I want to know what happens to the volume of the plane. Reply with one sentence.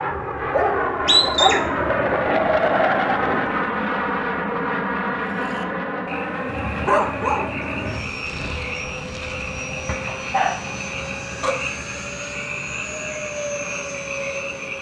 The loudness of the plane goes down.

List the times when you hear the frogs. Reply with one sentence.
You can hear the frogs from 5.2 to 14.7 s.